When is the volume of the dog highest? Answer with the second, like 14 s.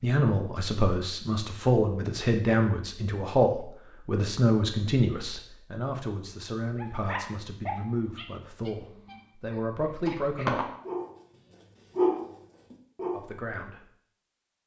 12 s.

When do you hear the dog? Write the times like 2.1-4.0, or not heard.
6.8-11.2, 11.9-13.2.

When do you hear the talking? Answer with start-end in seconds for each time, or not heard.
0.0-10.6, 13.1-13.8.